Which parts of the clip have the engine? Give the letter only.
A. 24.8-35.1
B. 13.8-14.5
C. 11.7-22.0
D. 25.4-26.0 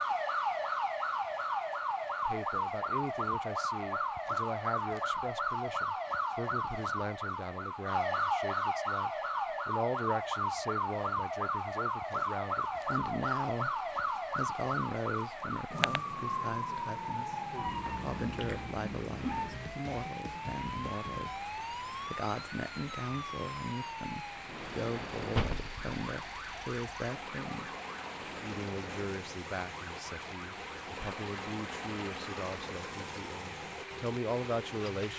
A.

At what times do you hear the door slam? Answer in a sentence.
You can hear the door slam from 25.4 to 26.0 s.